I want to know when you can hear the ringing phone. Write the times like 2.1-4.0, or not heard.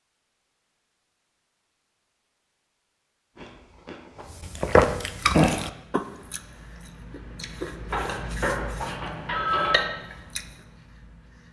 7.9-9.9.